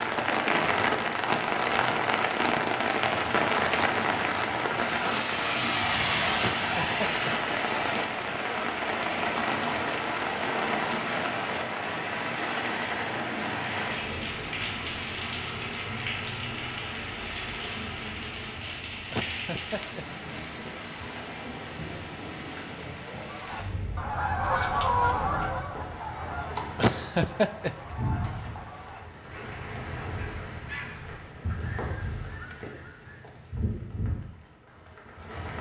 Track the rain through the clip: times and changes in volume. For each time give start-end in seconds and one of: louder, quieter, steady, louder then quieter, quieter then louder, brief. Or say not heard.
0.0-35.5 quieter.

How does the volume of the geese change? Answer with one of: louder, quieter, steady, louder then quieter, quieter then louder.
quieter.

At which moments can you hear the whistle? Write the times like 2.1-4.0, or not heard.
not heard.